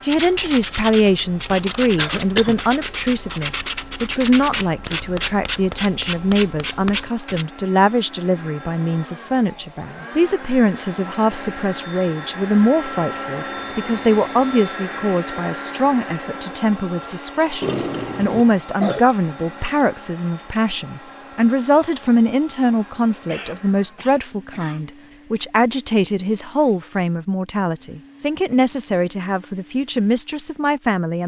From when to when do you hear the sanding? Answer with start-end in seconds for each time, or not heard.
0.1-7.5.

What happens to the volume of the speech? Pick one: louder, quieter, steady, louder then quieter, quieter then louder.
steady.